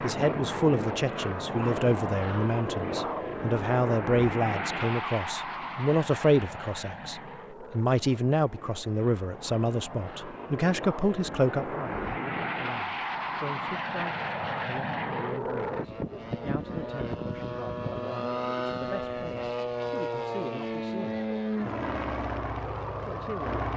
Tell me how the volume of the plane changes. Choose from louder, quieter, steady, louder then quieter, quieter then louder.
quieter then louder.